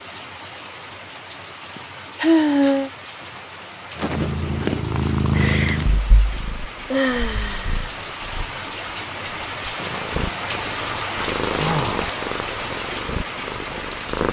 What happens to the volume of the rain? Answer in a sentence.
The volume of the rain goes up.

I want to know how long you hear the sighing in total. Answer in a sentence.
You can hear the sighing for 3 seconds altogether.